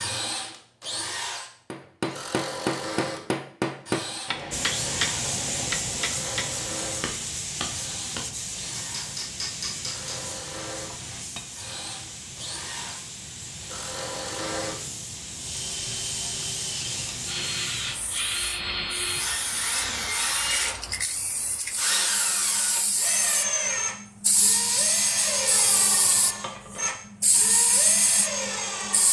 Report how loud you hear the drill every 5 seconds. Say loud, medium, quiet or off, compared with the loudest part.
medium, quiet, medium, loud, loud, loud.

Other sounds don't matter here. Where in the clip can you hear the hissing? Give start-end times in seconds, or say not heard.
4.5-29.0.